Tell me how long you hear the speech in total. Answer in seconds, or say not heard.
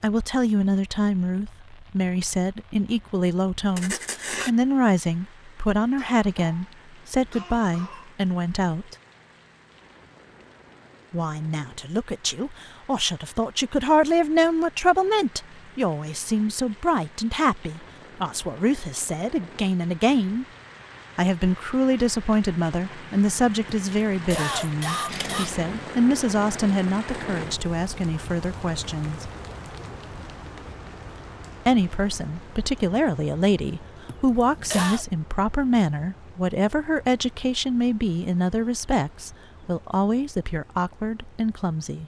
37 s.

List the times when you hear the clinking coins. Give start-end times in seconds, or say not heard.
not heard.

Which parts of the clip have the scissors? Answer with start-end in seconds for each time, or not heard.
3.8-4.5, 25.1-25.9.